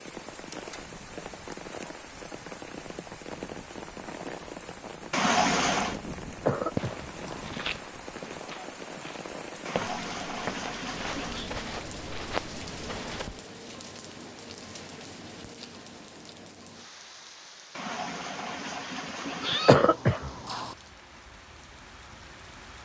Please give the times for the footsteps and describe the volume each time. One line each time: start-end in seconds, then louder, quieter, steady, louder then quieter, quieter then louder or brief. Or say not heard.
6.8-13.4 quieter then louder.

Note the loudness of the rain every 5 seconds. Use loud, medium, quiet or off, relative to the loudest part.
loud, loud, loud, medium, medium.